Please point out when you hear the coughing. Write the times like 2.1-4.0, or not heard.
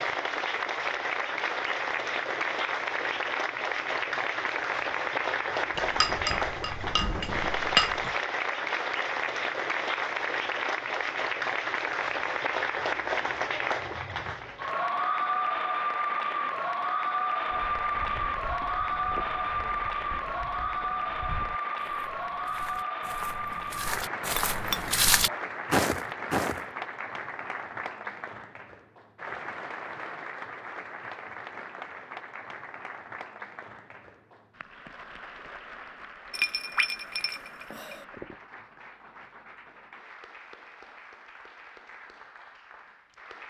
not heard.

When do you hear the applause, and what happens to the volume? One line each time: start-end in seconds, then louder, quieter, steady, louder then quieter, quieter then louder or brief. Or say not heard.
0.0-43.4 quieter.